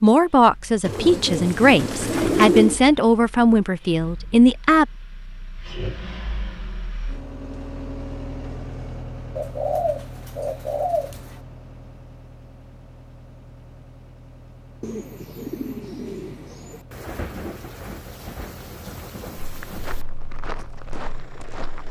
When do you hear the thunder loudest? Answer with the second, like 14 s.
17 s.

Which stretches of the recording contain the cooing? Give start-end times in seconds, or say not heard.
0.8-2.8, 9.3-11.4, 14.8-16.9.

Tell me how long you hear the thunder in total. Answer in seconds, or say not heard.
3 s.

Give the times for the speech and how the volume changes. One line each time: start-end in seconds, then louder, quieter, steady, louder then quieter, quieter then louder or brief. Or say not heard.
0.0-4.8 steady.